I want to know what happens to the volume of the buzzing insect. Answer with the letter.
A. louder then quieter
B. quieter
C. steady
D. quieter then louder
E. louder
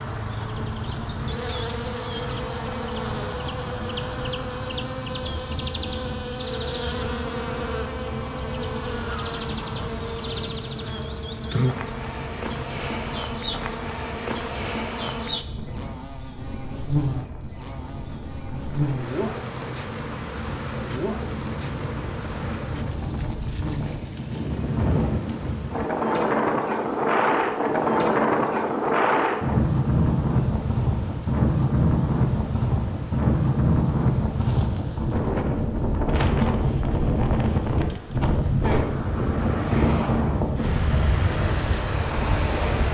B.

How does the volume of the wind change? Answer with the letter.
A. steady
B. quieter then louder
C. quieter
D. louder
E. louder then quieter
D.